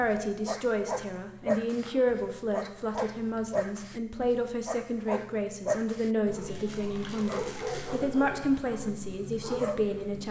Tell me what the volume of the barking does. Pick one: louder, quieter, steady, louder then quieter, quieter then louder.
steady.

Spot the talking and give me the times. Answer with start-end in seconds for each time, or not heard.
0.0-10.2.